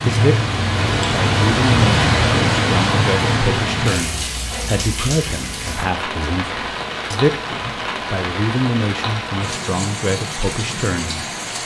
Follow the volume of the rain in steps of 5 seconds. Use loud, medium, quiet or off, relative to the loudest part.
loud, medium, medium.